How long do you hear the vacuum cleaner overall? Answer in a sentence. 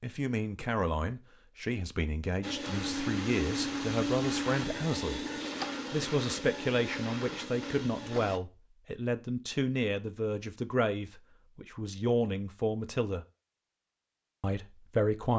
The vacuum cleaner can be heard for 6 seconds in total.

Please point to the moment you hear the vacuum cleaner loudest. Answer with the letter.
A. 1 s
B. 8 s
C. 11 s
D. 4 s
D.